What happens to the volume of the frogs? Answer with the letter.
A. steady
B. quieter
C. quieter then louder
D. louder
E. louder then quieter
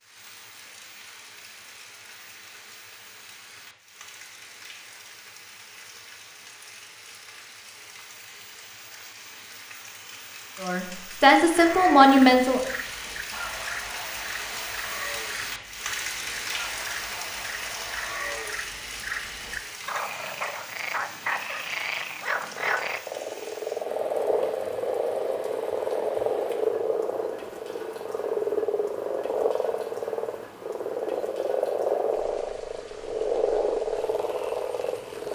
D.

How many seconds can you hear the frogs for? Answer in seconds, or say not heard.
24 s.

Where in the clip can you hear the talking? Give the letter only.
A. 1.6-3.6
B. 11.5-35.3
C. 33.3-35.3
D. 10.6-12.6
D.